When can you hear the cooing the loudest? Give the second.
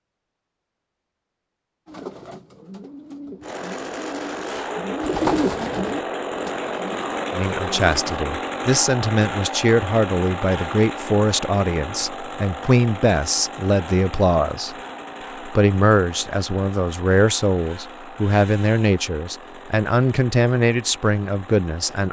5 s.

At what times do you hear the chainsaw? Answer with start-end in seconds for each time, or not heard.
3.4-22.0.